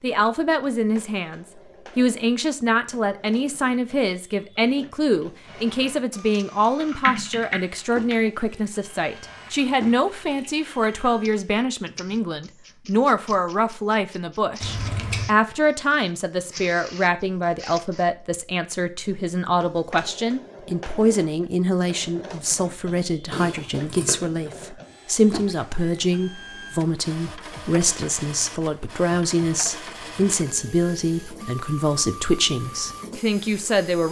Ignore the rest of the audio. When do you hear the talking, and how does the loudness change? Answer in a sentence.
The talking can be heard from 0.0 to 34.0 s, at a steady volume.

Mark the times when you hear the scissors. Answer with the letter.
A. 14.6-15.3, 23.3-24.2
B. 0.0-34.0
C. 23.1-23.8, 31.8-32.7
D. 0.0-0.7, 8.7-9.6
A.